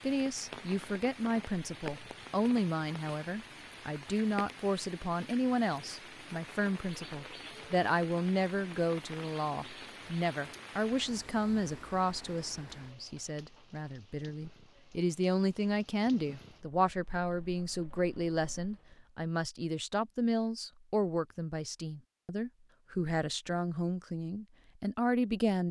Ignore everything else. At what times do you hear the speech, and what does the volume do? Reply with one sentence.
You can hear the speech from 0.0 to 25.6 s, at a steady volume.